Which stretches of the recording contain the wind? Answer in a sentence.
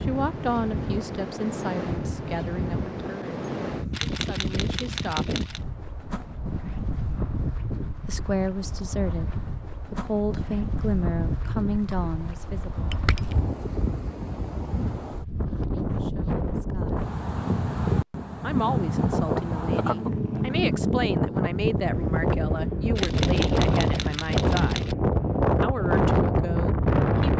The wind can be heard from 0.0 to 27.3 s.